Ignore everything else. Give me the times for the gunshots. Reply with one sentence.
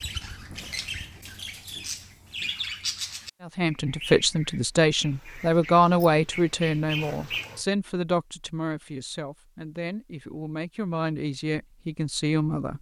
You can't hear the gunshots here.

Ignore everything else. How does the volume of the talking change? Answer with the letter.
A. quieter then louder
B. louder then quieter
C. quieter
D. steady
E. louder
A.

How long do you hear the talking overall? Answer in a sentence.
The talking can be heard for 9 seconds in total.